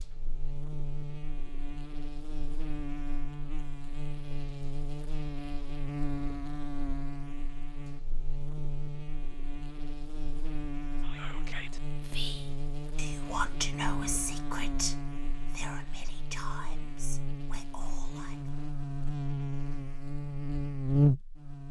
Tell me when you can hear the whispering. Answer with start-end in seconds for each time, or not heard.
11.0-18.5.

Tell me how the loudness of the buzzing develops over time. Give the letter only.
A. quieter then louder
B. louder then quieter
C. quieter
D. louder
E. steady
D.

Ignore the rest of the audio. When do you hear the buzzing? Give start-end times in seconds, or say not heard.
0.0-21.6.